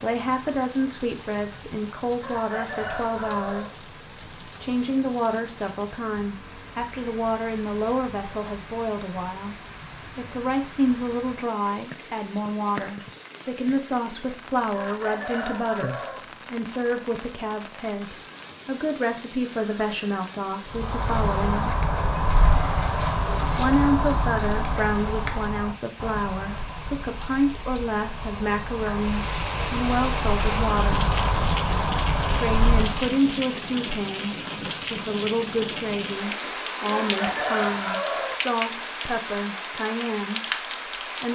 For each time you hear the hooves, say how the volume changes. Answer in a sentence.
You can hear the hooves from 20.6 to 33.1 s, getting quieter then louder.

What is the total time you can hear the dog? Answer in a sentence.
The dog can't be heard in this clip.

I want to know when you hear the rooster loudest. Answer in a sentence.
The loudest moment of the rooster is at 38 seconds.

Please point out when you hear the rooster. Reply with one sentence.
You can hear the rooster from 2.2 to 3.7 s, from 14.7 to 16.2 s and from 36.9 to 38.4 s.